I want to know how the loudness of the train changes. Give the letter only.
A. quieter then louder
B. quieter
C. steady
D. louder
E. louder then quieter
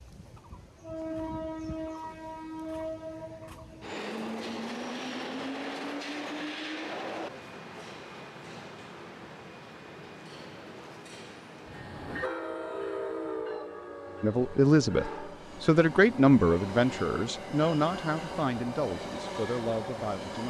A.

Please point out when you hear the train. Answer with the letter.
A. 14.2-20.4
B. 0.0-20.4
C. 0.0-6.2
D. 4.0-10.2
B.